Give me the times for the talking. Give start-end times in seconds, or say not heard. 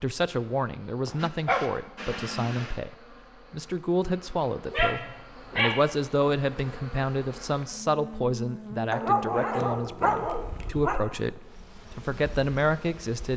0.0-13.3.